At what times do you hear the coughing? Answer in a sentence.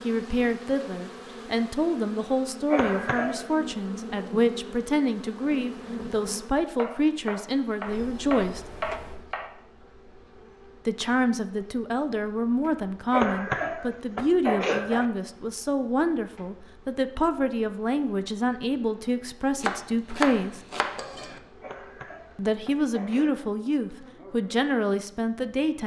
The coughing can be heard from 2.7 to 3.5 s, from 13.1 to 15.1 s and from 21.6 to 23.5 s.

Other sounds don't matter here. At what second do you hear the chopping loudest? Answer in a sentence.
The loudest moment of the chopping is at 20 seconds.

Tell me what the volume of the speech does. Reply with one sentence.
The loudness of the speech stays about the same.